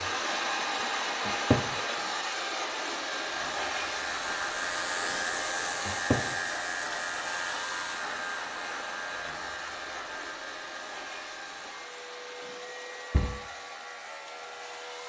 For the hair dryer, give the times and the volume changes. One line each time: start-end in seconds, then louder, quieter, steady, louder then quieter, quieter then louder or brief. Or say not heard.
0.0-15.0 quieter.